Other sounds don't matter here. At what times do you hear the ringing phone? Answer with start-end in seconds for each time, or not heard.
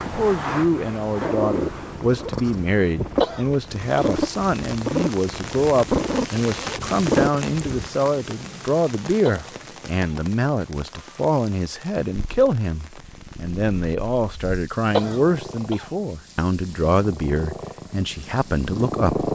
not heard.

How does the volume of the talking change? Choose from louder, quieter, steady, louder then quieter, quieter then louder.
steady.